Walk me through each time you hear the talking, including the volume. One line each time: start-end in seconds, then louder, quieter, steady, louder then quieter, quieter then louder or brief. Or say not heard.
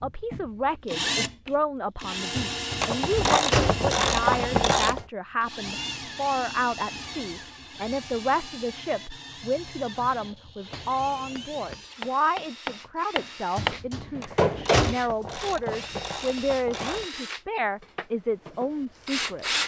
0.0-19.4 steady.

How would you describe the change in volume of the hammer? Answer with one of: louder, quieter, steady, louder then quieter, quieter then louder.
louder then quieter.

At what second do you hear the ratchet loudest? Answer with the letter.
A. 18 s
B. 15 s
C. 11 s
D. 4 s
D.